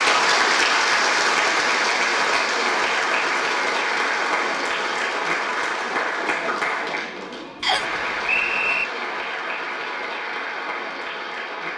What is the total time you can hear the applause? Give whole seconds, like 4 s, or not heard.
12 s.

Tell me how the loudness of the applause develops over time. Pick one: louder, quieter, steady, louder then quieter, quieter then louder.
quieter.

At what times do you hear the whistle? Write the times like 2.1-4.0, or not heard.
7.6-8.8.